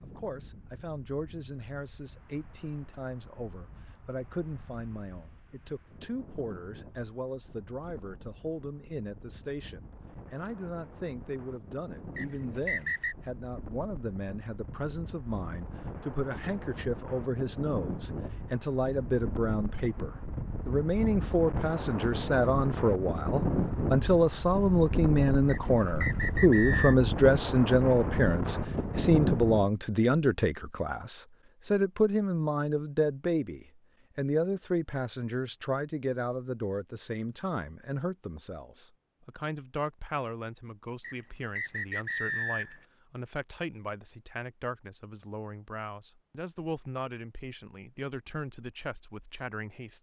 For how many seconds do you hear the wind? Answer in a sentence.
You can hear the wind for 30 seconds altogether.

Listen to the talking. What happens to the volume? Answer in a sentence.
The volume of the talking goes up, then down.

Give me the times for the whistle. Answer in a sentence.
You can hear the whistle from 12.2 to 13.2 s, from 25.4 to 26.9 s and from 41.0 to 42.9 s.